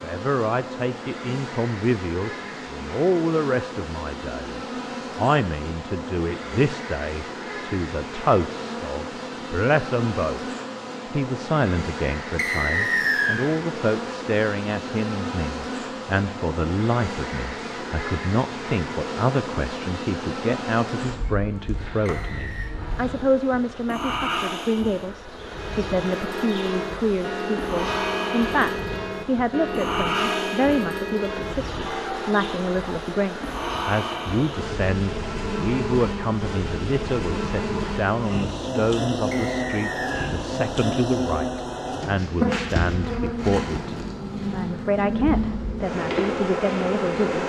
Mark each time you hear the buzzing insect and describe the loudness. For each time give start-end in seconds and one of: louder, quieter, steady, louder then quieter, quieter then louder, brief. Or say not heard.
0.0-47.4 louder.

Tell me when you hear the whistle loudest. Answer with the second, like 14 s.
13 s.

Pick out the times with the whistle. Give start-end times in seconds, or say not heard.
12.3-13.4, 22.1-22.7, 39.3-40.4.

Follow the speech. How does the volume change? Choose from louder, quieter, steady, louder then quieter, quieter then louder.
steady.